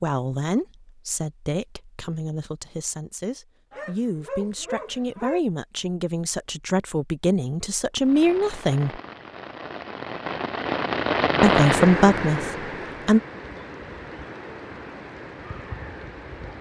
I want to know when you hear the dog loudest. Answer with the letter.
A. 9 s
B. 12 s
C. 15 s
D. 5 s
D.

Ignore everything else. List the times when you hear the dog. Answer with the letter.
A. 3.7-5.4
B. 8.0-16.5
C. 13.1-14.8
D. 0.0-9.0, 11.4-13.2
A.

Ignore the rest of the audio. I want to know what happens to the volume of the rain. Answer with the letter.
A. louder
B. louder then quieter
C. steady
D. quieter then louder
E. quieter
B.